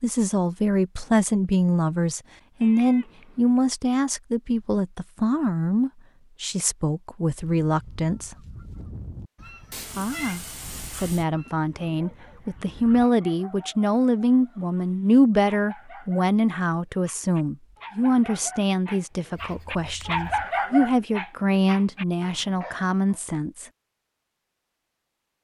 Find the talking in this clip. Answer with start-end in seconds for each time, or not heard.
0.0-8.3, 9.9-23.6.